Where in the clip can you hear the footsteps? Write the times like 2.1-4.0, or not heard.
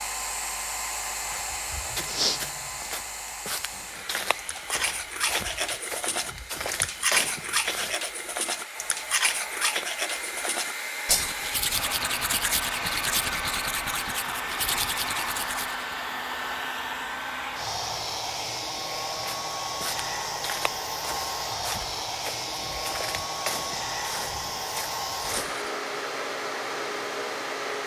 1.2-8.0, 19.1-25.6.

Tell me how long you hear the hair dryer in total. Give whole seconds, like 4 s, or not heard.
28 s.